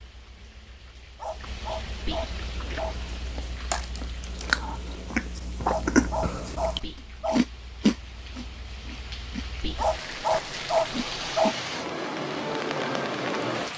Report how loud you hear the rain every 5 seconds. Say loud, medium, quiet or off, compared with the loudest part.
quiet, quiet, loud.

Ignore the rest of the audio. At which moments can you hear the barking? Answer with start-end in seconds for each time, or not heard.
1.1-3.0, 5.7-7.4, 9.8-11.6.